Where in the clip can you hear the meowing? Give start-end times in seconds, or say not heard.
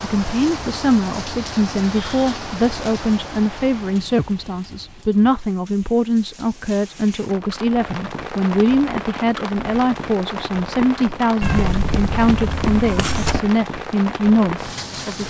11.4-13.4.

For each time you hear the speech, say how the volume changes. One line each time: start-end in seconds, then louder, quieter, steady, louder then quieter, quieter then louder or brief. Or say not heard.
0.0-15.2 steady.